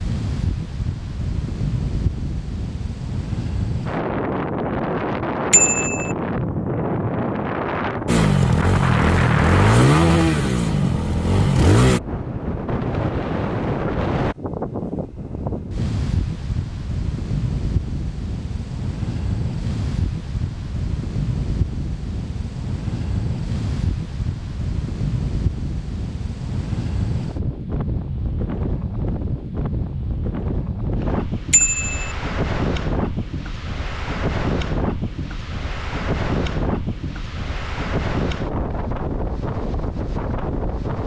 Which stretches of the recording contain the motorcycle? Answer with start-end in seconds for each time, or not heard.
8.1-12.0.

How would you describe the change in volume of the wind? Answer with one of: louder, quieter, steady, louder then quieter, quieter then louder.
steady.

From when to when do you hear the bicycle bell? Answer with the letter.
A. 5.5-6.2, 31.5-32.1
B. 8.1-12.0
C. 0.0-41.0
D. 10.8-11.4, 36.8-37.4
A.